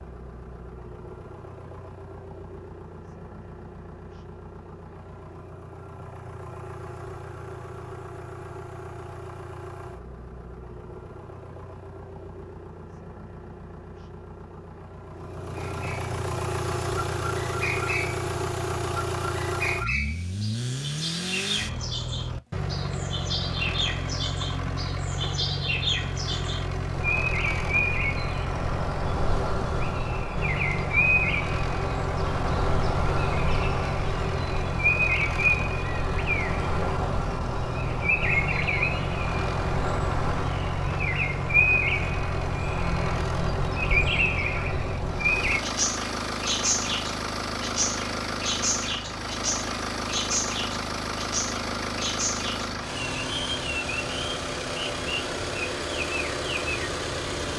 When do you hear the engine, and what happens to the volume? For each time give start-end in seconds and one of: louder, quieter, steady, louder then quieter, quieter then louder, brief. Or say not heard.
0.0-57.5 louder.